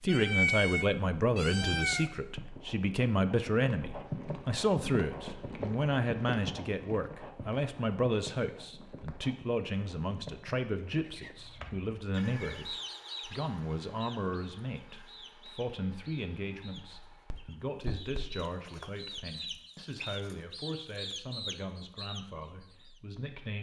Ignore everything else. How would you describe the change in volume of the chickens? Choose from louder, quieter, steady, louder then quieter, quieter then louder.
quieter then louder.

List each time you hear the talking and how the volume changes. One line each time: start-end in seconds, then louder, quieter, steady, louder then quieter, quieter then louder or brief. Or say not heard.
0.0-23.5 quieter.